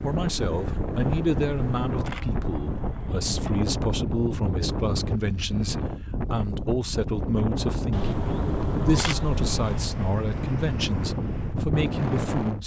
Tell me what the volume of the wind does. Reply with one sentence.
The volume of the wind stays about the same.